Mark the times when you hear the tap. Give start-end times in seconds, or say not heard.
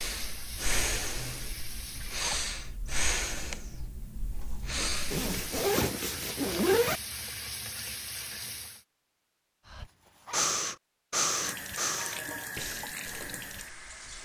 0.0-2.3, 5.1-8.8, 11.2-14.2.